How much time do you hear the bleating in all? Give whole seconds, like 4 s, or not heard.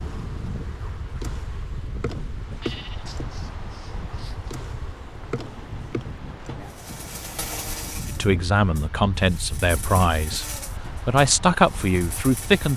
2 s.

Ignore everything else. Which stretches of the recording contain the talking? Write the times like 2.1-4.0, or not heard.
8.1-12.7.